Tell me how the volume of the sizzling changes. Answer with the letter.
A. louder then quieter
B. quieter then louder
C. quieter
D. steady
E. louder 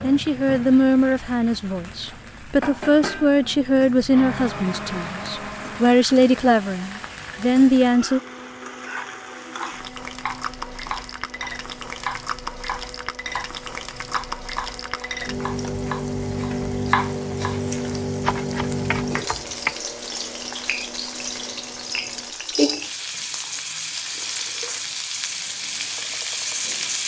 E.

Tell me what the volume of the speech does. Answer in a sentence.
The loudness of the speech stays about the same.